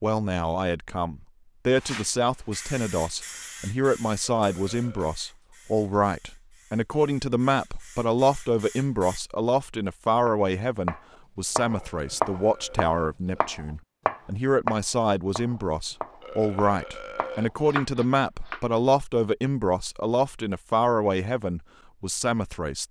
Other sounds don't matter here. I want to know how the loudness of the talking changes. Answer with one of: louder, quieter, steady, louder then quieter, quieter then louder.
steady.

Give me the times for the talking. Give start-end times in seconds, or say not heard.
0.0-22.8.